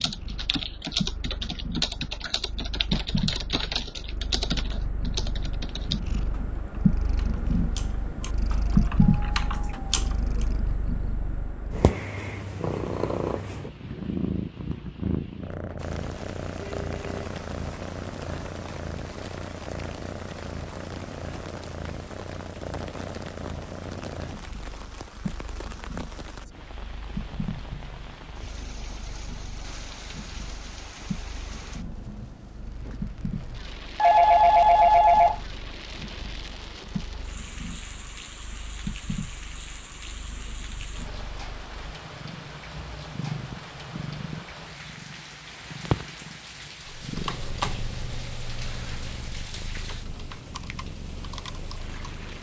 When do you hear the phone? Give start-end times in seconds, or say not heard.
16.8-17.3, 34.0-35.4.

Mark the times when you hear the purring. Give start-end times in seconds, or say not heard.
0.0-52.3.